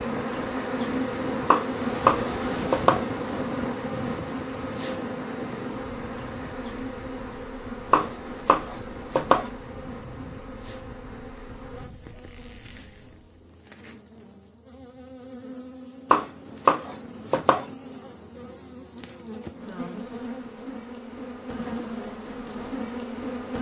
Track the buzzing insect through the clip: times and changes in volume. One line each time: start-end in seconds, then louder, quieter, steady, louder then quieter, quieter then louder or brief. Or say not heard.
0.0-23.5 quieter then louder.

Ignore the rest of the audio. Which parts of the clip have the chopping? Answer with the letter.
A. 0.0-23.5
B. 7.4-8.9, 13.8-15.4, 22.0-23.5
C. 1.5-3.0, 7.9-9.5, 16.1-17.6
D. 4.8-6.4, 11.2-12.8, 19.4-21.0
C.